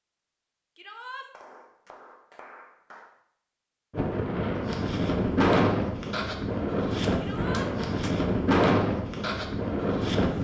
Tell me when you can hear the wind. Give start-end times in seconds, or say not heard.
3.9-10.3.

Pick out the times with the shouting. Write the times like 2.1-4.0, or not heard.
0.8-1.3, 7.2-7.7.